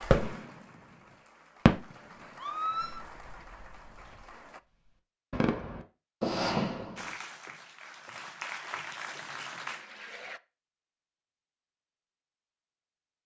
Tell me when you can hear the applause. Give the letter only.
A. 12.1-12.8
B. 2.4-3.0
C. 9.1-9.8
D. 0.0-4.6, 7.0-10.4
D.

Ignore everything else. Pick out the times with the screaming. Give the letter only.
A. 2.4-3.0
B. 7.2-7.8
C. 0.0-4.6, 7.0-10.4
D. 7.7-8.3
A.